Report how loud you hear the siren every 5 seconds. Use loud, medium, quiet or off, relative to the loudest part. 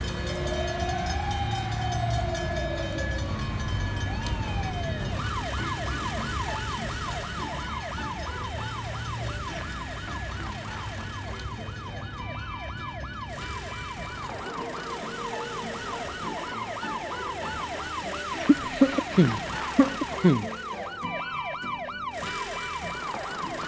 loud, loud, medium, loud, loud.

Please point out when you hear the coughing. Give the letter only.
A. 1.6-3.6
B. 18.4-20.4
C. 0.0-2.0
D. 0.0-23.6
B.